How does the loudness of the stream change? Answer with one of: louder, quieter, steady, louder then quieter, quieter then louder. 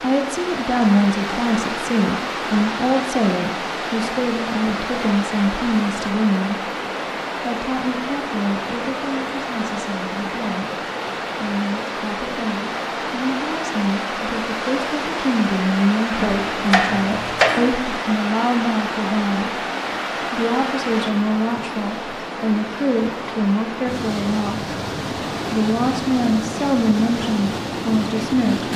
steady.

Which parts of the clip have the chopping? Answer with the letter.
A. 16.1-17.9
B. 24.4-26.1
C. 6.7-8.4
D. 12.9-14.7
A.